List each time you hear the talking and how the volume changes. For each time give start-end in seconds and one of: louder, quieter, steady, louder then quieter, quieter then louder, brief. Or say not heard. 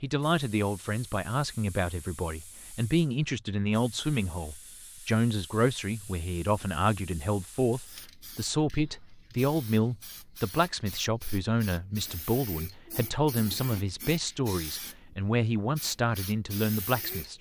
0.0-17.3 steady.